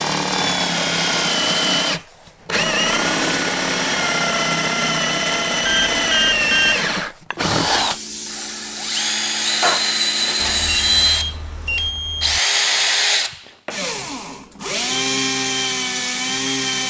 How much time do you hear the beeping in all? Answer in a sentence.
You can hear the beeping for 3 seconds altogether.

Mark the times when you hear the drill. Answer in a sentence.
You can hear the drill from 0.0 to 16.8 s.